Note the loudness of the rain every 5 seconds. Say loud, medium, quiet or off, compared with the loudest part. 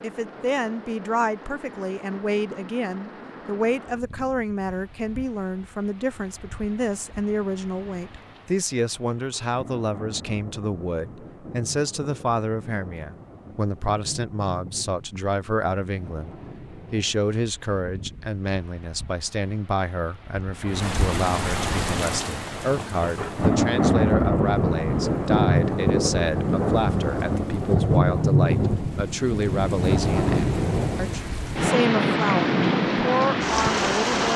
quiet, quiet, quiet, quiet, loud, loud, loud.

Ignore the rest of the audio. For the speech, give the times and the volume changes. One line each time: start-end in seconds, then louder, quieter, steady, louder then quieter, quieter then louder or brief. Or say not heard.
0.0-34.3 steady.